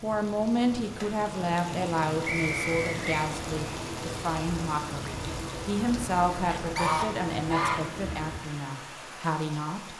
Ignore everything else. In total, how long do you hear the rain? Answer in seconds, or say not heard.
10 s.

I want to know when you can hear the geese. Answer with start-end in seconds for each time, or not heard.
6.3-7.9.